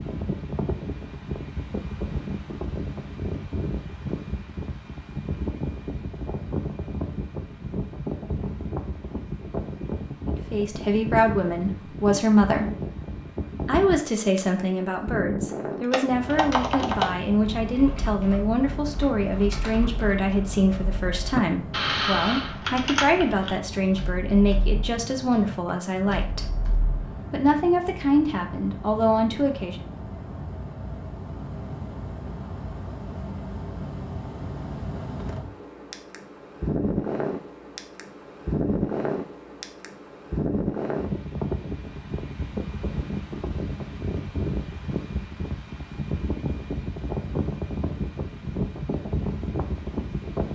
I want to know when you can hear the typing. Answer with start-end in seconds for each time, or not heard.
15.9-27.7.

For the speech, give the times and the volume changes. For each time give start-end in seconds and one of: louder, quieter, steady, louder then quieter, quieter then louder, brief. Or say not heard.
10.5-12.7 brief
13.7-26.5 steady
27.3-29.8 brief.